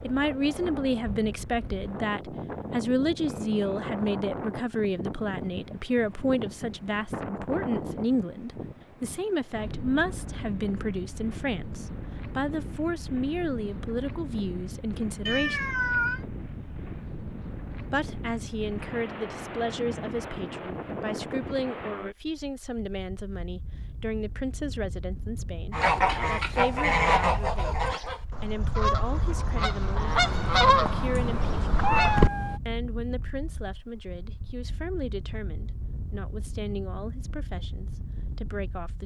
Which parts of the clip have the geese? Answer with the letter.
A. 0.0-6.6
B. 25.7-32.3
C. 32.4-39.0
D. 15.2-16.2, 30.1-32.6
B.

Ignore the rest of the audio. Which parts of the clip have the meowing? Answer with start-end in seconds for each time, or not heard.
15.2-16.2, 30.1-32.6.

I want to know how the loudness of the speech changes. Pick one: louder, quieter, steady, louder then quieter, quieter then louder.
quieter.